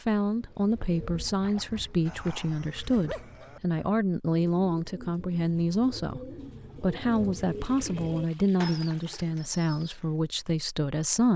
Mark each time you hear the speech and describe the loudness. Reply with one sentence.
The speech can be heard from 0.0 to 11.3 s, at a steady volume.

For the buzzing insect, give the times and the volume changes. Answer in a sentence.
The buzzing insect can't be heard in this clip.